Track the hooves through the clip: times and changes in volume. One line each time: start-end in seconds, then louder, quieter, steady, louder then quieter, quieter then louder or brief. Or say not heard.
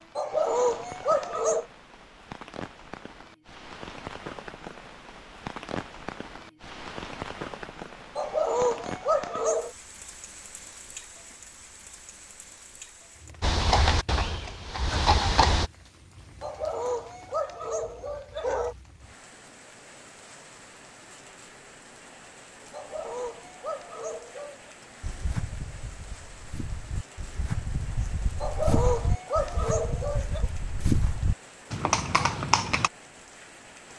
13.4-15.7 brief
25.0-32.9 louder.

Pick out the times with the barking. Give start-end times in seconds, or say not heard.
0.1-1.6, 8.2-9.7, 16.4-18.8, 22.7-24.8, 28.4-30.4.